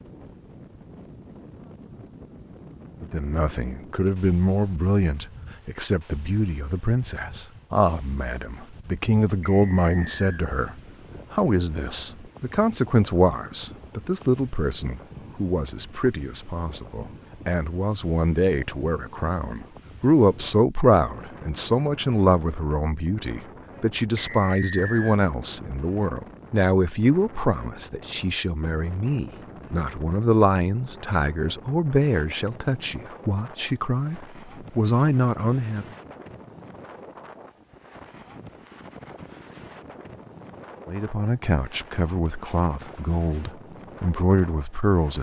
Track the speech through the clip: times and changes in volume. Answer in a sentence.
The speech can be heard from 3.0 to 35.9 s, at a steady volume; and from 40.9 to 45.1 s, getting quieter then louder.